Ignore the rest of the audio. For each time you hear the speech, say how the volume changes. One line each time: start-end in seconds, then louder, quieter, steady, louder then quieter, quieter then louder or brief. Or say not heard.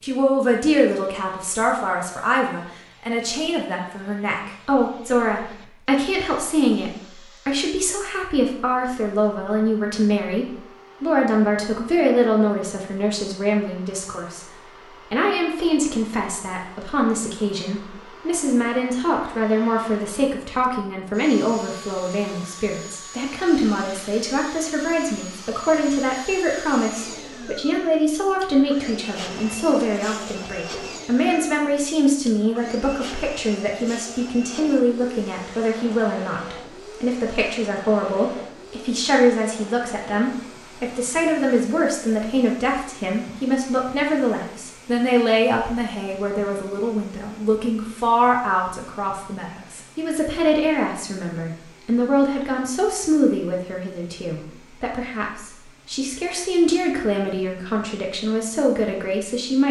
0.0-59.6 steady.